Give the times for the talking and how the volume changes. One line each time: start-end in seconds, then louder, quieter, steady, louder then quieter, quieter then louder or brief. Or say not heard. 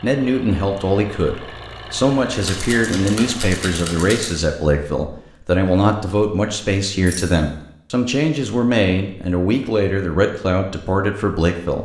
0.0-11.8 steady.